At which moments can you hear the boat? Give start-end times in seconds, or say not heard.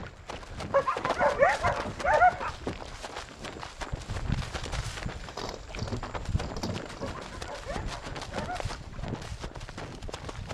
0.0-10.5.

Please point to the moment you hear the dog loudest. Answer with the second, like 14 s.
2 s.